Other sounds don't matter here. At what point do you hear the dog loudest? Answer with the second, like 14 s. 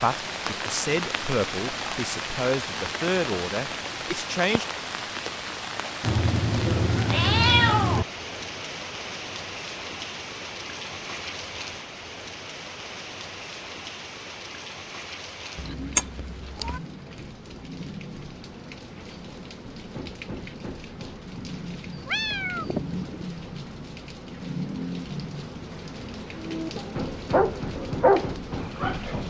28 s.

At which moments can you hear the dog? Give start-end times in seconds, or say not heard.
26.4-29.2.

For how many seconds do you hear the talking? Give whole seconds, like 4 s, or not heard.
5 s.